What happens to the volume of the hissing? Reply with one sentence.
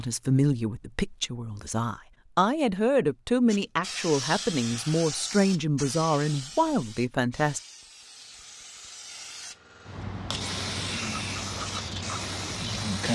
The volume of the hissing goes down, then up.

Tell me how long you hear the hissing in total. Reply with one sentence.
The hissing can be heard for 10 seconds in total.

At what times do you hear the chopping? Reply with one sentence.
The chopping can't be heard in this clip.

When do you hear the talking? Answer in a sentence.
You can hear the talking from 0.0 to 7.6 s.